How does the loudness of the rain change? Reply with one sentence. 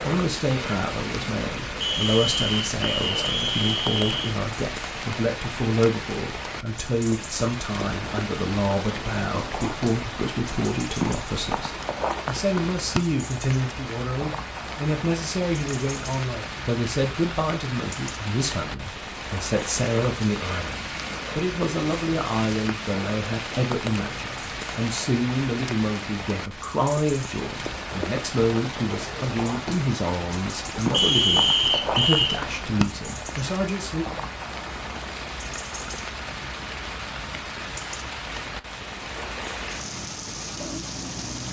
The volume of the rain stays about the same.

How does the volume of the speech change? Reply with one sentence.
The loudness of the speech stays about the same.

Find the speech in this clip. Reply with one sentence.
You can hear the speech from 0.0 to 34.0 s.